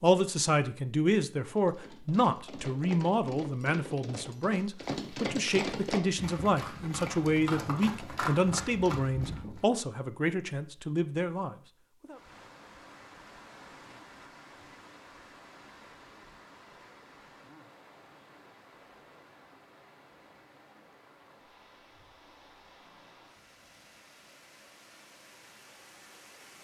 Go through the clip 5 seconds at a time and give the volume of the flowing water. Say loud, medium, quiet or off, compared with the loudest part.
off, off, loud, loud, medium, loud.